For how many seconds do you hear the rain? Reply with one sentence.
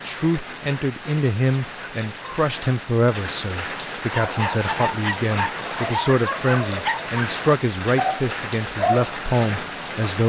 The rain can be heard for 10 seconds in total.